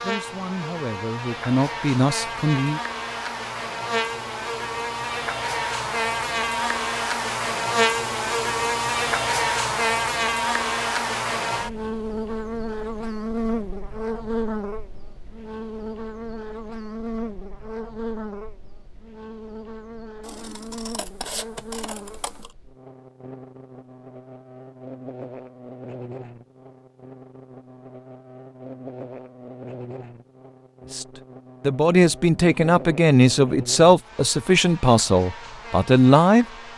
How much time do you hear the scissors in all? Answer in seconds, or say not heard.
2 s.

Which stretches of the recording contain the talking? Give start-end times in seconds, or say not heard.
0.0-2.8, 30.9-36.5.